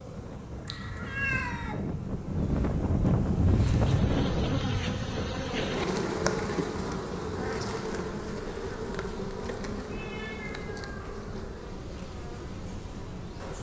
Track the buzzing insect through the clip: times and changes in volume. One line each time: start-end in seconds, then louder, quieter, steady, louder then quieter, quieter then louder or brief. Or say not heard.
0.0-13.5 louder then quieter.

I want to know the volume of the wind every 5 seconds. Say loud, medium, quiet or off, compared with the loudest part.
loud, medium, quiet.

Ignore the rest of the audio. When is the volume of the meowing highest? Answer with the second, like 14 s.
1 s.